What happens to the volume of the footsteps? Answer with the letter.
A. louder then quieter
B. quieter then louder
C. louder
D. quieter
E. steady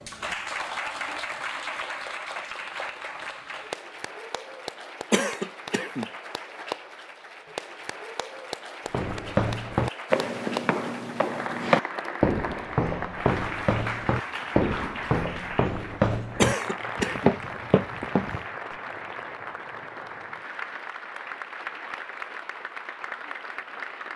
E.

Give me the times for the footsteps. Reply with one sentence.
The footsteps can be heard from 8.9 to 18.8 s.